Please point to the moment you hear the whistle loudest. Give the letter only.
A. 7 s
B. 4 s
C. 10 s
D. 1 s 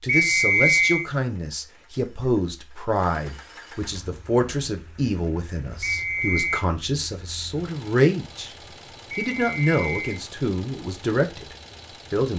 D.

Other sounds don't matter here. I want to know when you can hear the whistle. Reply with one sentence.
You can hear the whistle from 0.1 to 1.1 s, from 5.8 to 6.7 s and from 9.1 to 10.2 s.